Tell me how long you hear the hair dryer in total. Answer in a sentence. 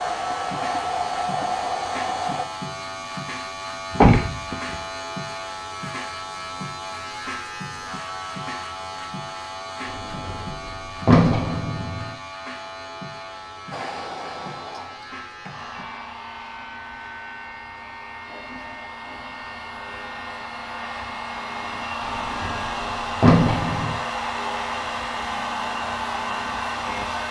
You can hear the hair dryer for 16 seconds altogether.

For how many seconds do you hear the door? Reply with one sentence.
The door can be heard for 5 seconds in total.